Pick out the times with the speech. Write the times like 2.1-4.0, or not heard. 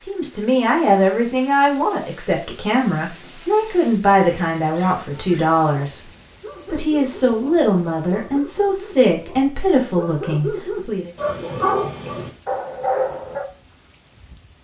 0.1-6.0, 6.7-11.1.